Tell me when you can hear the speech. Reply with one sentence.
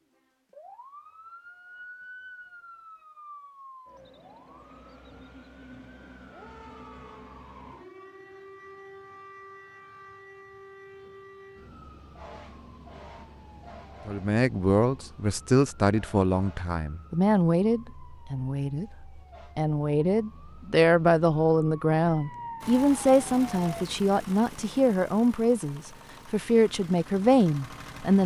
The speech can be heard from 14.1 to 28.2 s.